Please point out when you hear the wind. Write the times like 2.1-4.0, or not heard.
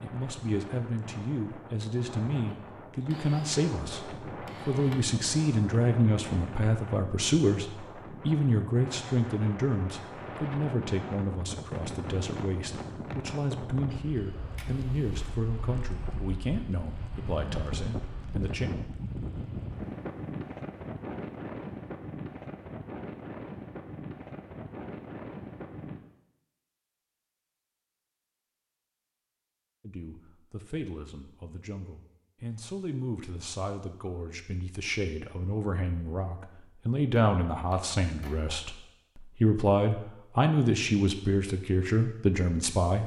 0.0-26.0.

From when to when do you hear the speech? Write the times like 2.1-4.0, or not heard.
0.0-18.7, 29.8-43.0.